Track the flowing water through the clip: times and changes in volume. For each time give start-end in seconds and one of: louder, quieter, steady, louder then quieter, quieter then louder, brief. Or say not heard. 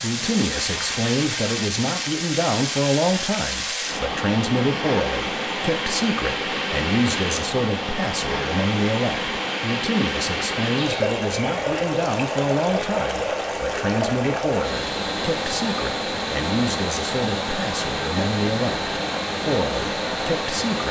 0.0-20.8 steady.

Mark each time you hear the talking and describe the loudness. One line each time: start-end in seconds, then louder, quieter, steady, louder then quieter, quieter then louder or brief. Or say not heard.
0.0-20.8 steady.